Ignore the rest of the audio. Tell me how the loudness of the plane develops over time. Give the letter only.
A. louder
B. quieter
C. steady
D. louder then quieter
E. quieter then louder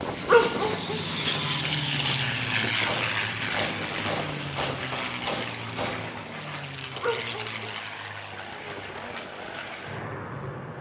B.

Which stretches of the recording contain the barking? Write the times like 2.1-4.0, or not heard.
0.2-1.0, 7.0-7.8.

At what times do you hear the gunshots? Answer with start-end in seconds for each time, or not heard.
2.8-6.2.